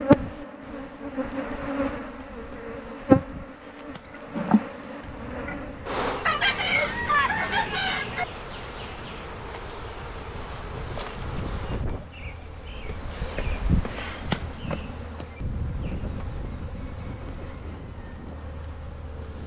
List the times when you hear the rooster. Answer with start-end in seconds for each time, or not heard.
6.2-8.2.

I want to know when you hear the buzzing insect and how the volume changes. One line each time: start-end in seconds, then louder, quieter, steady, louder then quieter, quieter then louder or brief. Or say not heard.
0.0-19.4 quieter.